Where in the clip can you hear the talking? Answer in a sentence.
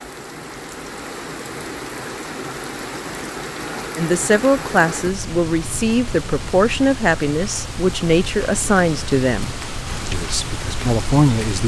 The talking can be heard from 4.0 to 11.6 s.